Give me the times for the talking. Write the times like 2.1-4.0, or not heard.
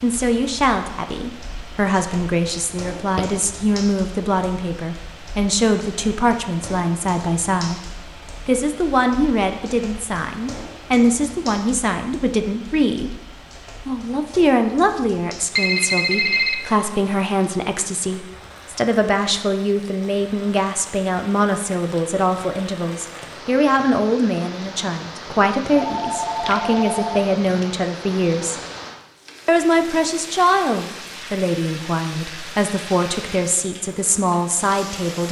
0.0-13.1, 13.8-28.6, 29.4-35.2.